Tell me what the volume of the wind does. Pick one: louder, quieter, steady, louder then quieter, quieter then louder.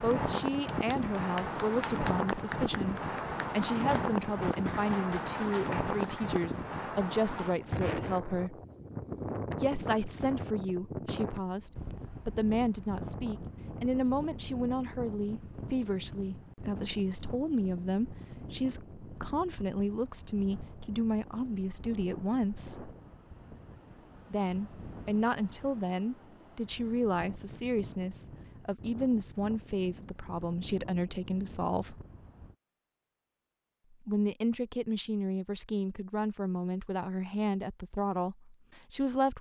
quieter.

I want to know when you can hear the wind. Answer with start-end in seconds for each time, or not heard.
0.0-32.5.